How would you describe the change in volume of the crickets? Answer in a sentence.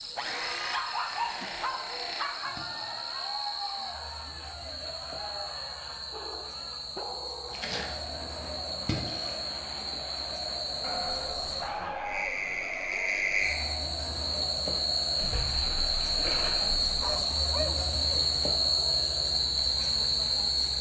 The loudness of the crickets goes up.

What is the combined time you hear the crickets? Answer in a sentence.
You can hear the crickets for 21 seconds altogether.